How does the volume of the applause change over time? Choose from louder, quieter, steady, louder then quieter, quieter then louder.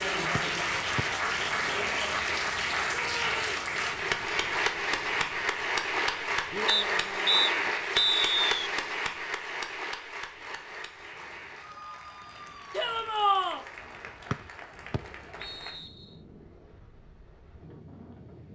quieter.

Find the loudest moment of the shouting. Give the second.
13 s.